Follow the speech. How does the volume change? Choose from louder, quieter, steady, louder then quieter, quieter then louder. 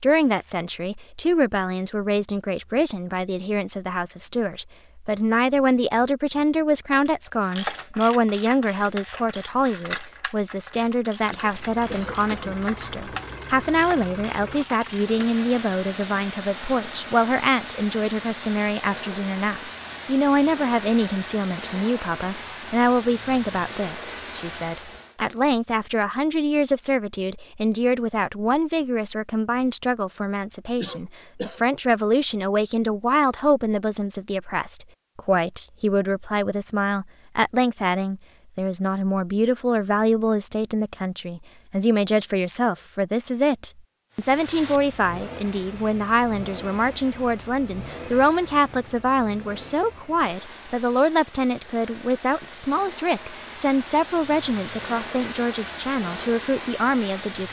steady.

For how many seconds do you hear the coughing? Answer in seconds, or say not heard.
2 s.